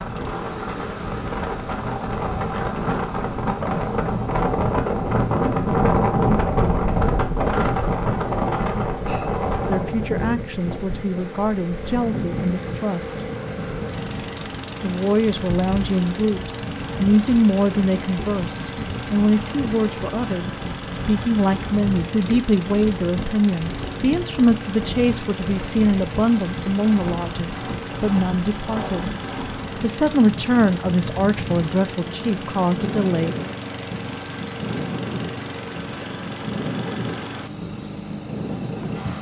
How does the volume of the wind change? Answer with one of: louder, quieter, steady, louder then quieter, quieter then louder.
quieter.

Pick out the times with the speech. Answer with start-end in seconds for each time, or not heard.
9.6-13.2, 14.8-29.1, 29.8-33.4.